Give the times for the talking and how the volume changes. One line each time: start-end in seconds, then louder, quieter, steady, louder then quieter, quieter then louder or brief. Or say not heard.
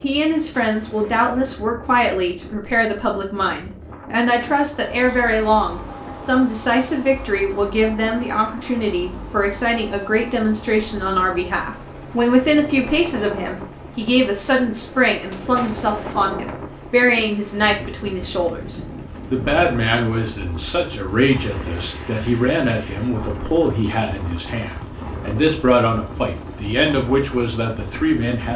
0.0-28.5 steady.